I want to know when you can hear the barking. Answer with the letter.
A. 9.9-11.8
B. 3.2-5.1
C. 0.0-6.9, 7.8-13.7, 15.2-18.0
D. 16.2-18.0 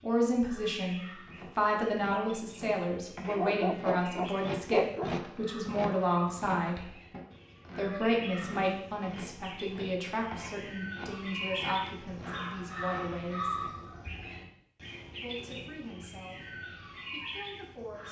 B.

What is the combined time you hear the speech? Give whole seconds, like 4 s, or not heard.
16 s.